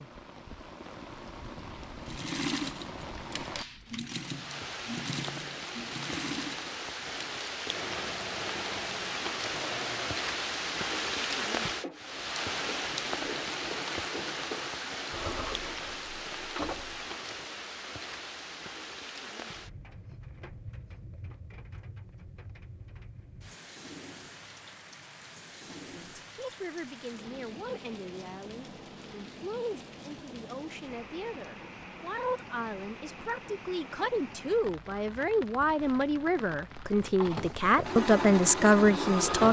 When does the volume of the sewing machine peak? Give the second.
39 s.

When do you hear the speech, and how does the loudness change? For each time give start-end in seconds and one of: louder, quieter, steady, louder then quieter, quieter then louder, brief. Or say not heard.
25.8-39.4 louder.